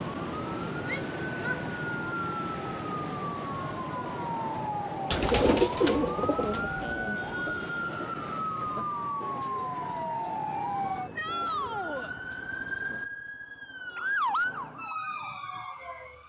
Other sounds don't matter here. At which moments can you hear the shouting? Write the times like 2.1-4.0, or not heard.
0.8-1.6, 11.2-12.1.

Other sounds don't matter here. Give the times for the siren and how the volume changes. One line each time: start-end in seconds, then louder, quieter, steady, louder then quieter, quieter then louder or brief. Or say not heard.
0.0-16.2 steady.